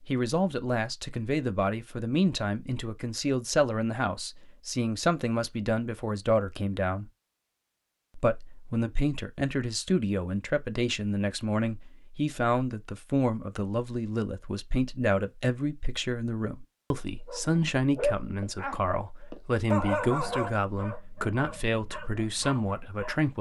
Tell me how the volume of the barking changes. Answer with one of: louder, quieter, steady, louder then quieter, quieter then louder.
quieter.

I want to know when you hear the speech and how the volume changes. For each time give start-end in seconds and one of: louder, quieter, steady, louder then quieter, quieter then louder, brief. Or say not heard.
0.1-7.0 steady
8.2-23.3 steady.